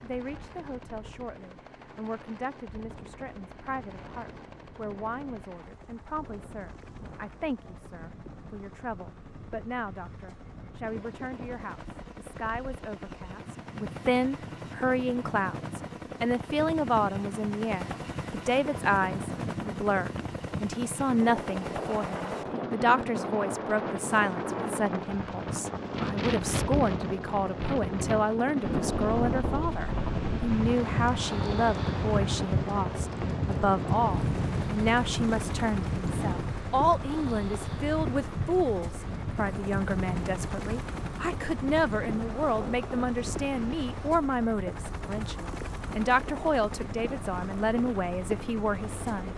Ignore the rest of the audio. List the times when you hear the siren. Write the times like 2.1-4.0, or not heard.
not heard.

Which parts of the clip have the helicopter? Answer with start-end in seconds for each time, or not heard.
0.0-49.3.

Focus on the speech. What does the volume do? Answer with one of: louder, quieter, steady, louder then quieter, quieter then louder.
louder.